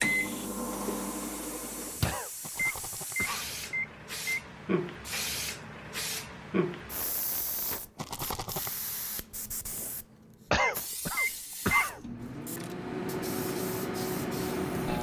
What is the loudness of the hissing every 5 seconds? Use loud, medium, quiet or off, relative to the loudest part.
loud, loud, medium.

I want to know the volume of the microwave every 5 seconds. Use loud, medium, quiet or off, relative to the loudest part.
loud, off, loud.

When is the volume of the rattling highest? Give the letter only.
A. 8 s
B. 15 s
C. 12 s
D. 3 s
A.